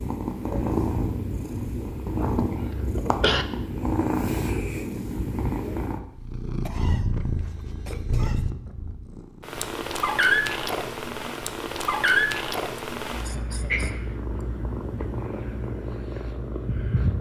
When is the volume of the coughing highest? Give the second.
3 s.